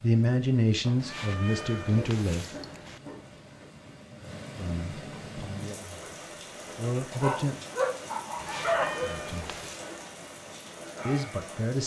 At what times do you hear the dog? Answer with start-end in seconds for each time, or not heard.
1.9-3.6, 7.1-9.1.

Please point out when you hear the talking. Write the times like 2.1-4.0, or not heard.
0.0-2.5, 4.5-6.0, 6.8-7.5, 9.0-9.4, 11.1-11.8.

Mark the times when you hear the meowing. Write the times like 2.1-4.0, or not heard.
0.9-3.0, 8.3-9.8.